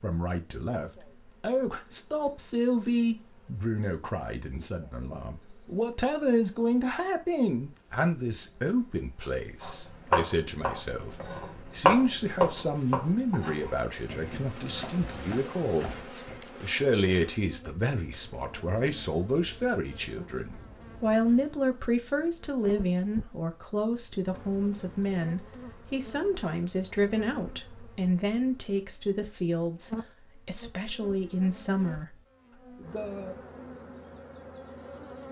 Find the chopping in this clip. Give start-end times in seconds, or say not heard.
9.6-16.4.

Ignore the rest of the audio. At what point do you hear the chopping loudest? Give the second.
12 s.